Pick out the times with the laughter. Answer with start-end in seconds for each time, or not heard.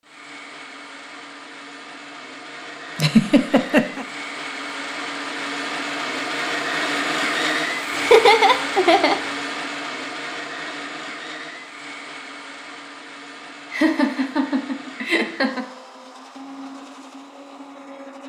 3.0-4.0, 8.0-9.2, 13.7-15.7.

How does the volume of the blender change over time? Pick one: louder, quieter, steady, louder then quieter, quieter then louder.
louder then quieter.